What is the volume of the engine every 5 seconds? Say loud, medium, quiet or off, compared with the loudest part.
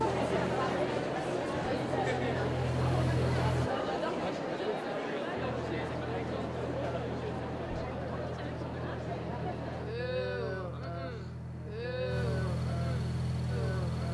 loud, medium, loud.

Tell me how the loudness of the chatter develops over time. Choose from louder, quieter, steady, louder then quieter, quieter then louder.
quieter.